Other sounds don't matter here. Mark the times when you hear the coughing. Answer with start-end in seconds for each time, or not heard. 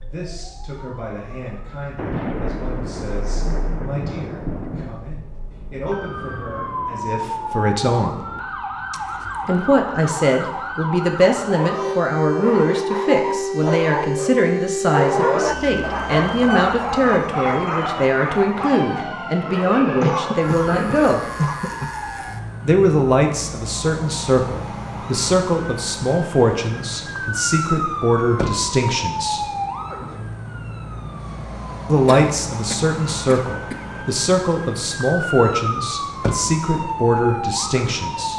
8.9-9.5, 20.0-21.9, 32.0-33.9.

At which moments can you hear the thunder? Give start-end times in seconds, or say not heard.
1.9-5.0.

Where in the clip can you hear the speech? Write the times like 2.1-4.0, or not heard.
0.0-8.2, 9.4-21.2, 22.6-29.4, 31.9-38.3.